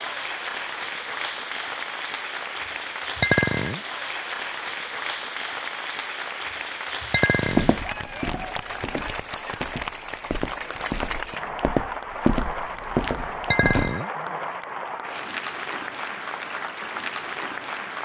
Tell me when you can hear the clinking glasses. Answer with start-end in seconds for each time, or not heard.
3.2-3.8, 7.1-7.8, 13.5-14.1.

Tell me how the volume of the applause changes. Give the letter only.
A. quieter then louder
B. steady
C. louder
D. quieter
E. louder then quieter
B.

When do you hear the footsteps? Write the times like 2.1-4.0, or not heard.
7.4-13.9.